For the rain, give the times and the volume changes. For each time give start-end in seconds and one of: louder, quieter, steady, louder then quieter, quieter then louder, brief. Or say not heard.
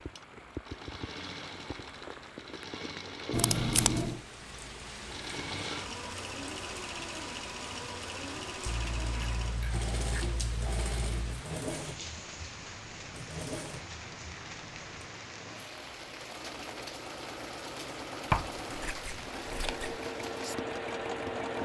0.0-21.5 steady.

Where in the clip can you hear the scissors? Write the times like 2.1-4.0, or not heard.
3.3-4.2, 8.7-11.4, 18.3-20.0.